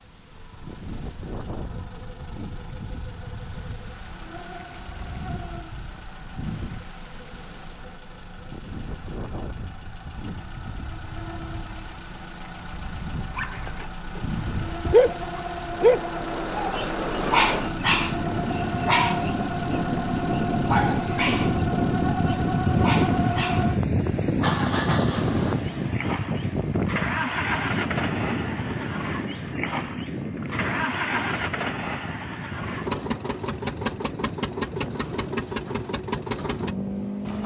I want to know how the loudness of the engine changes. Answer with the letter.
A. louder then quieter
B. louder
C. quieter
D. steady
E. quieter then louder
B.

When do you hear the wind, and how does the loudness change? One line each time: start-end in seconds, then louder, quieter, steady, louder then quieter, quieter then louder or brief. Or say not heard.
0.0-37.4 louder then quieter.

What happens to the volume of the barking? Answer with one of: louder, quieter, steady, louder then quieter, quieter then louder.
quieter.